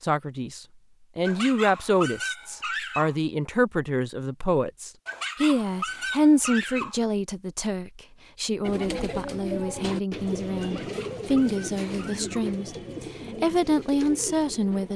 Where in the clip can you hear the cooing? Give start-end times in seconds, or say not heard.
8.6-14.9.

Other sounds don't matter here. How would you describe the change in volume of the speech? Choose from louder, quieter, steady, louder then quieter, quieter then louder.
steady.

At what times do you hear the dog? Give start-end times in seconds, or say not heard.
1.2-3.1, 5.0-7.0, 10.6-12.5.